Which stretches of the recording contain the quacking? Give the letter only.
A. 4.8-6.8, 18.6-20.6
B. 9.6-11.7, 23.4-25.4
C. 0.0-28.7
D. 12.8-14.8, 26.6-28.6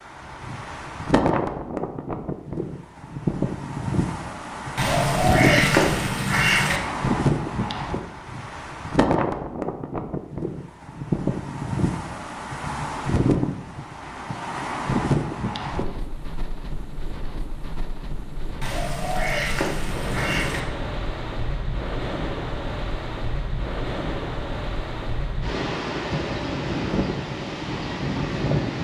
A.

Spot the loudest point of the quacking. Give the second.
6 s.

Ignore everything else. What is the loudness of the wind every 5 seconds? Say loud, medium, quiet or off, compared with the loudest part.
loud, loud, loud, medium, medium, loud.